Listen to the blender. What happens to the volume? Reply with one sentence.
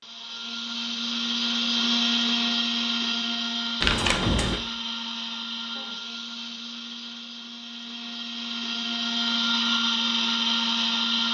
The volume of the blender goes down, then up.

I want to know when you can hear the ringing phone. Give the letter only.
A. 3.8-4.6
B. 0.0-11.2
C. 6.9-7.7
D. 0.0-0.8
A.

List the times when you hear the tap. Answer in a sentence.
The tap can't be heard in this clip.